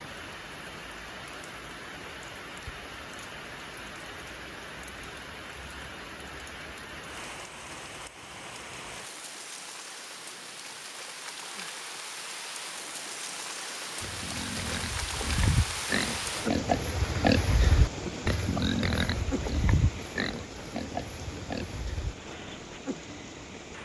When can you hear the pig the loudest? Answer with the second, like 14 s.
17 s.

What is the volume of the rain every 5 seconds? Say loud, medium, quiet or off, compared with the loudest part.
medium, medium, loud, loud, medium.